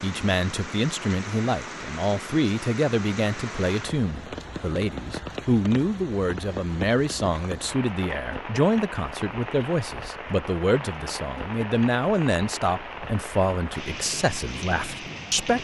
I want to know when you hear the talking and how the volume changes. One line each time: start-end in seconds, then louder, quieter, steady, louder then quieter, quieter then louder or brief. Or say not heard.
0.0-15.5 steady.